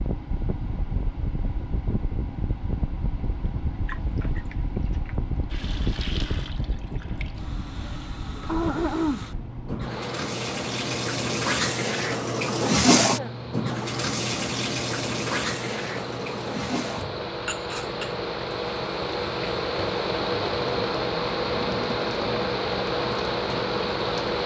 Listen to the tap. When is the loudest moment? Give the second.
13 s.